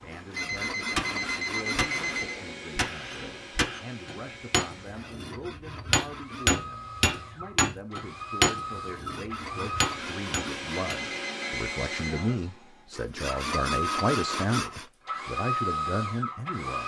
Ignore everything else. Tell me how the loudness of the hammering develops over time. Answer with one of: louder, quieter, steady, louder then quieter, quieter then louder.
louder then quieter.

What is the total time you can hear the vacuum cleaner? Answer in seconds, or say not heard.
17 s.